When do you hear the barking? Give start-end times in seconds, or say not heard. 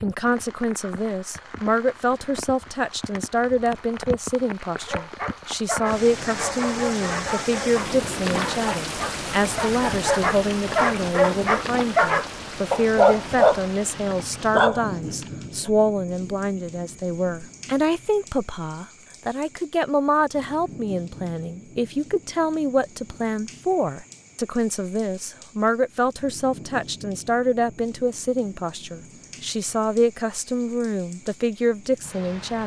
4.8-15.7.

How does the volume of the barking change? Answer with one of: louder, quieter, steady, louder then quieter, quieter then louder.
louder.